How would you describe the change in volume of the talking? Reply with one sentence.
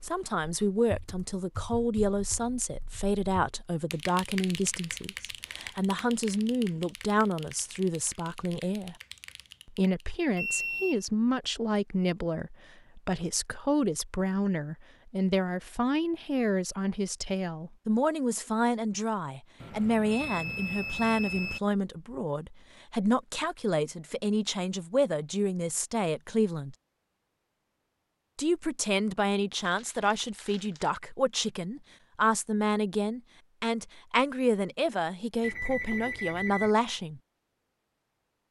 The loudness of the talking stays about the same.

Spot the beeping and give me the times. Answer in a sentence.
You can hear the beeping from 10.3 to 11.0 s, from 19.6 to 21.6 s and from 35.4 to 36.8 s.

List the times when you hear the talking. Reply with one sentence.
You can hear the talking from 0.0 to 8.9 s, from 9.7 to 26.8 s and from 28.4 to 37.2 s.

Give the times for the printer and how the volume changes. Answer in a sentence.
The printer can't be heard in this clip.